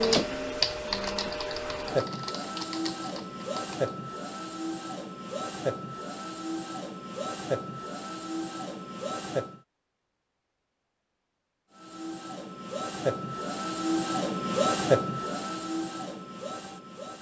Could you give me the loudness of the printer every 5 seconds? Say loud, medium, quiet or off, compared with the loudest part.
loud, medium, loud, medium.